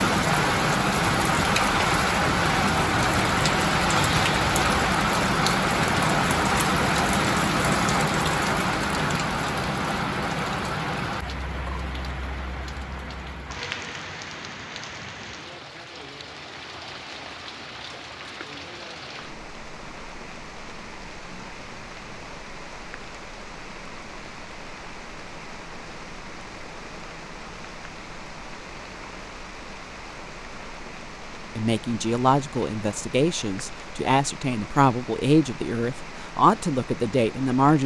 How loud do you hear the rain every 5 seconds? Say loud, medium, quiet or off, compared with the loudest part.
loud, loud, medium, quiet, quiet, quiet, quiet, quiet.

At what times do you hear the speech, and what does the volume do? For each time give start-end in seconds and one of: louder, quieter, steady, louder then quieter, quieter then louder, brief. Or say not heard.
31.6-37.8 steady.